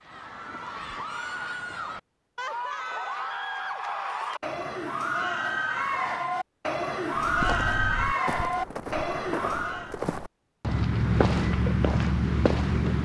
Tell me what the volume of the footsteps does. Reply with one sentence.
The loudness of the footsteps goes up.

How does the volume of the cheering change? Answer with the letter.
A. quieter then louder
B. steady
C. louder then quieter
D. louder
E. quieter
D.